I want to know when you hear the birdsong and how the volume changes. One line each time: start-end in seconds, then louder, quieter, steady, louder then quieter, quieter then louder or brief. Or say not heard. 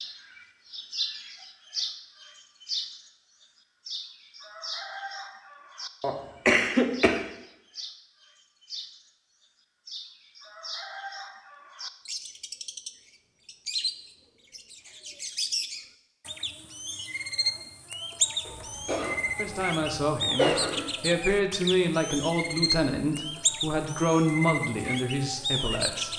0.0-26.1 quieter then louder.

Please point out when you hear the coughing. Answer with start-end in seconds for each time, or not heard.
6.0-7.2, 18.4-20.9.